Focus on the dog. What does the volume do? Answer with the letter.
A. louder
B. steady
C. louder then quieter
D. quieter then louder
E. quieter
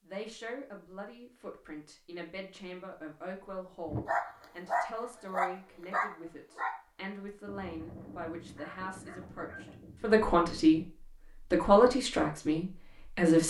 E.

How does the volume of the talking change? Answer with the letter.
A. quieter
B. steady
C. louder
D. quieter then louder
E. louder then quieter
C.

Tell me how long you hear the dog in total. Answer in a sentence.
You can hear the dog for 7 seconds altogether.